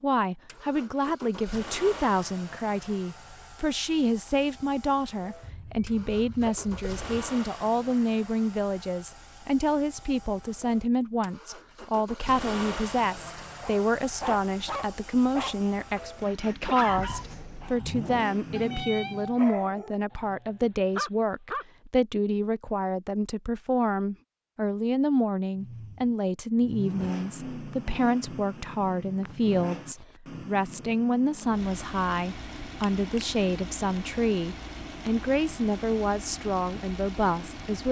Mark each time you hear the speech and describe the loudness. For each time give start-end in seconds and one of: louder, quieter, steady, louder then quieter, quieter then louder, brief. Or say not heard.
0.0-37.8 steady.